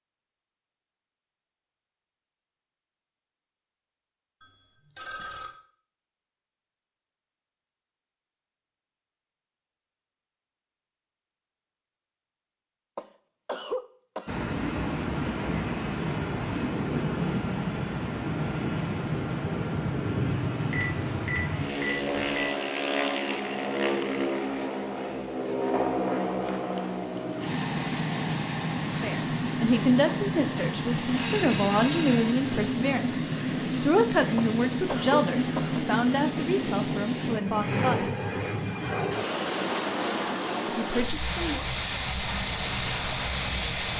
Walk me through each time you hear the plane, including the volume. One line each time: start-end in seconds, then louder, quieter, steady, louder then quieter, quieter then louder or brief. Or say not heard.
14.2-43.9 steady.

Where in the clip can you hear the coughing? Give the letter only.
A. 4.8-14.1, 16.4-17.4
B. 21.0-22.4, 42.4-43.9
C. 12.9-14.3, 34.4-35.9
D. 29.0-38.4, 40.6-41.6
C.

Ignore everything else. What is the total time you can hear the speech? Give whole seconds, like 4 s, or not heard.
10 s.